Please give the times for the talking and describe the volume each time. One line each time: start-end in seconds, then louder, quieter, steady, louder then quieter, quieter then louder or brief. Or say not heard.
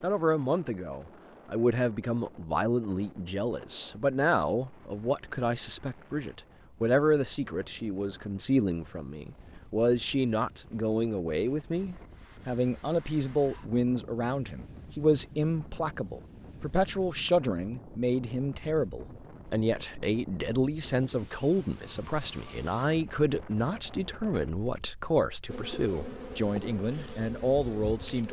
0.0-28.2 steady.